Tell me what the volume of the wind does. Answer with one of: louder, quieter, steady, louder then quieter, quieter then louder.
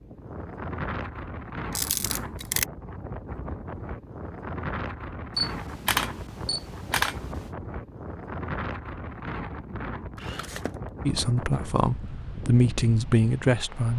steady.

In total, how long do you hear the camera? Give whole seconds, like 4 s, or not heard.
4 s.